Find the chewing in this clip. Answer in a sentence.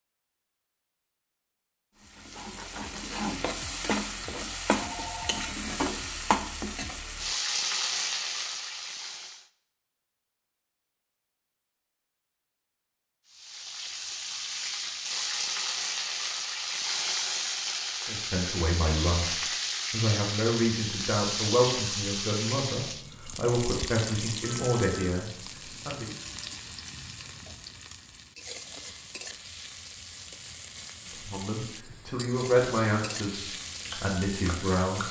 The chewing can be heard from 33.6 to 35.0 s.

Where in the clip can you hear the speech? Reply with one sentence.
The speech can be heard from 18.1 to 26.1 s and from 31.1 to 35.0 s.